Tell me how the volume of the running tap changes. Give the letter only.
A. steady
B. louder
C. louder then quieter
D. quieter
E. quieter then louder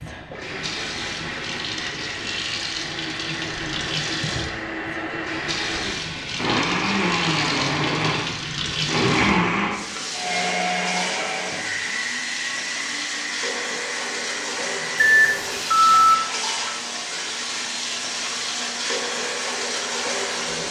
A.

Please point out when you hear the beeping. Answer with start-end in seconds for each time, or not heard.
14.9-16.1.